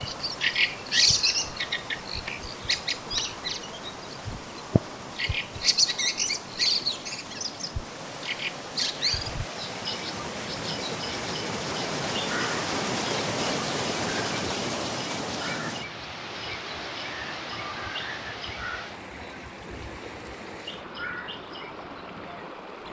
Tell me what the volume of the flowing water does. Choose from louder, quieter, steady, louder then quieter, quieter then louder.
louder then quieter.